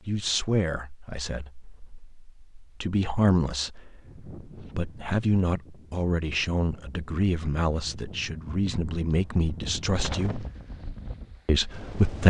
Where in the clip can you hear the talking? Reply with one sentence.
The talking can be heard from 0.1 to 10.4 s and from 11.4 to 12.2 s.